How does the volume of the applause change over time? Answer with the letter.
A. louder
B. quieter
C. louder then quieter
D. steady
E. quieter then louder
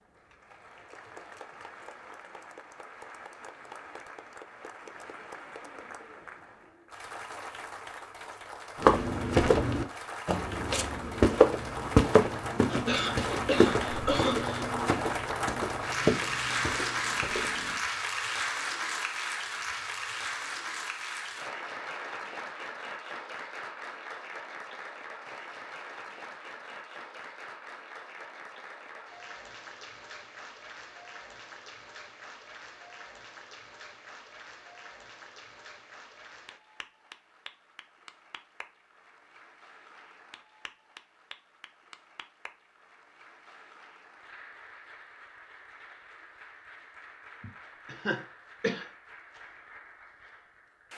C.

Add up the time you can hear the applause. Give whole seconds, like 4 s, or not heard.
51 s.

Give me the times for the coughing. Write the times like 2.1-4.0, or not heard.
12.7-14.7, 47.4-48.9.